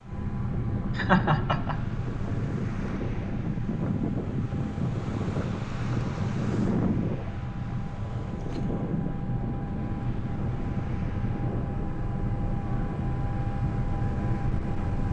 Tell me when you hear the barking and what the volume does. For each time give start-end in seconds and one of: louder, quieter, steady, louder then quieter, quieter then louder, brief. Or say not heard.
not heard.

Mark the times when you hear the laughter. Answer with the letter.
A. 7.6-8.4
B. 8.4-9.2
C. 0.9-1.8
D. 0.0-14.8
C.